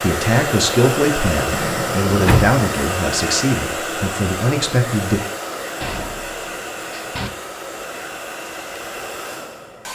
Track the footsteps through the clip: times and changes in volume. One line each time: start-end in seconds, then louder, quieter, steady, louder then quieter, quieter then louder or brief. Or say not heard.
not heard.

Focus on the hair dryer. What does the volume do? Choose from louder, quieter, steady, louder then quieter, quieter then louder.
quieter.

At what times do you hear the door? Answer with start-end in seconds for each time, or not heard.
1.5-2.5, 5.8-7.3.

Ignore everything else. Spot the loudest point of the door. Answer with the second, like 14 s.
2 s.